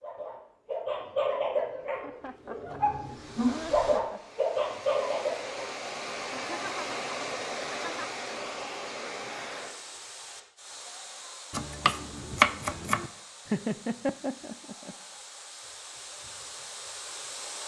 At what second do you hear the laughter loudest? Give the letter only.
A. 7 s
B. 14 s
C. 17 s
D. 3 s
B.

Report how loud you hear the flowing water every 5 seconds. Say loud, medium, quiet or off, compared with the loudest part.
medium, loud, medium, medium.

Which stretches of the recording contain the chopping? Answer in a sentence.
You can hear the chopping from 11.5 to 13.1 s.